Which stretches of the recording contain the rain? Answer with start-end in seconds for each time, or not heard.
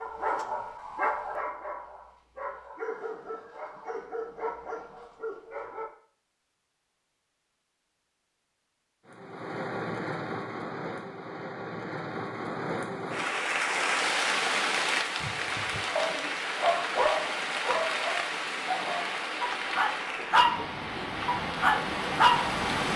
9.1-22.9.